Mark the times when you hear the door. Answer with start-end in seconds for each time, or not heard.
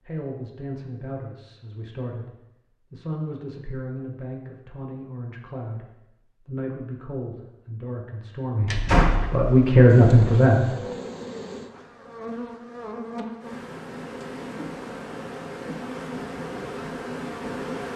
8.7-10.4.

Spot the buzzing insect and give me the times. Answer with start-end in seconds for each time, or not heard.
9.8-17.9.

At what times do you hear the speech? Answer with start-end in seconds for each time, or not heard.
0.1-10.6.